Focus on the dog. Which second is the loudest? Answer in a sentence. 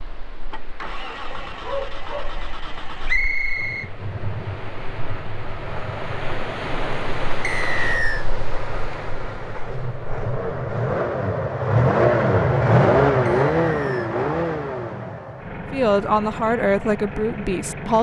The loudest moment of the dog is at 2 seconds.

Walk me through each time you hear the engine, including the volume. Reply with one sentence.
You can hear the engine from 0.1 to 17.9 s, getting louder then quieter.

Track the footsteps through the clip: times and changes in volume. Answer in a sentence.
You can't hear the footsteps here.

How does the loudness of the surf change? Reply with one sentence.
The volume of the surf goes up, then down.